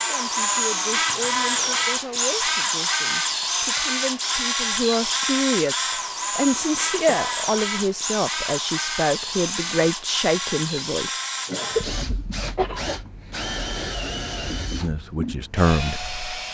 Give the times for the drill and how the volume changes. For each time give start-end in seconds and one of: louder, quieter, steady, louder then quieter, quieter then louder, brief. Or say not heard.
0.0-16.5 quieter.